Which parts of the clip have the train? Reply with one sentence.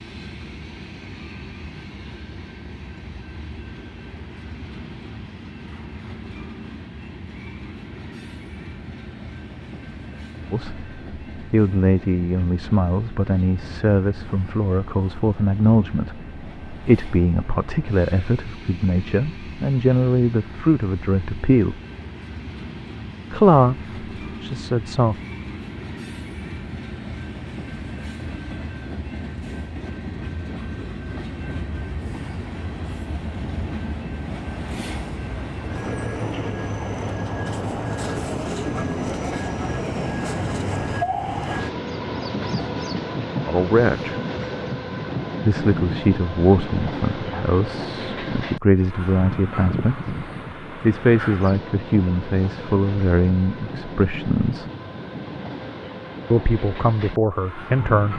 You can hear the train from 0.0 to 58.1 s.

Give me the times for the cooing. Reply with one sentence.
You can't hear the cooing here.